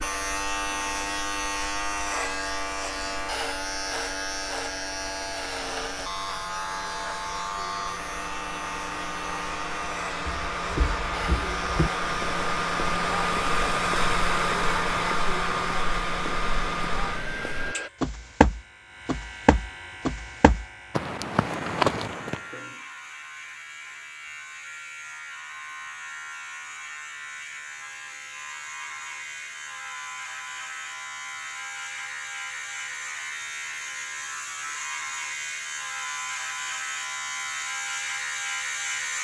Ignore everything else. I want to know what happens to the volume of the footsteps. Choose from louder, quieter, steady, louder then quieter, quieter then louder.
quieter then louder.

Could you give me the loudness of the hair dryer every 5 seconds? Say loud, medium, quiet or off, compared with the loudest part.
quiet, medium, loud, loud, off, off, off, off.